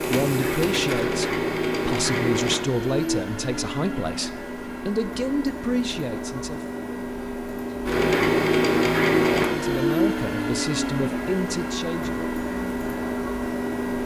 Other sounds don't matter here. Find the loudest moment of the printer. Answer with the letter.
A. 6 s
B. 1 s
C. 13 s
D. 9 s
D.